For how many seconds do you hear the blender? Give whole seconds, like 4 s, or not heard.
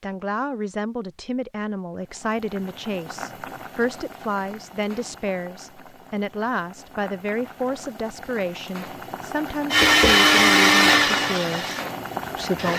3 s.